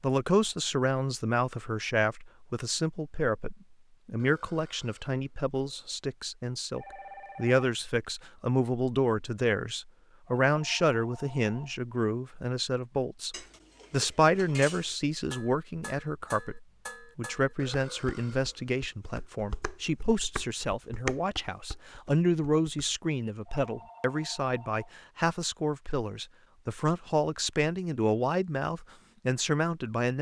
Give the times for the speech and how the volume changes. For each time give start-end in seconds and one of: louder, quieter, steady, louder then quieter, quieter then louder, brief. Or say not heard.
0.0-30.1 steady.